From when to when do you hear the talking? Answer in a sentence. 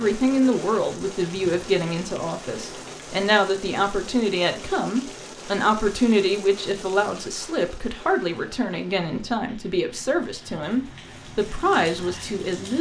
The talking can be heard from 0.0 to 12.7 s.